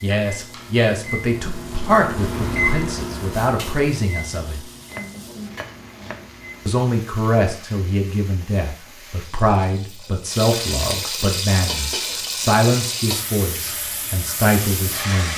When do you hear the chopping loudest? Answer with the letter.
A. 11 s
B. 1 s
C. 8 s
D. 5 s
D.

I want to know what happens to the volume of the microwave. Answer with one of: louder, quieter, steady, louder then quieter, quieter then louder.
louder then quieter.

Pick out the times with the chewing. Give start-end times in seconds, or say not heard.
not heard.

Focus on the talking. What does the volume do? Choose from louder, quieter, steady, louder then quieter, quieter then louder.
steady.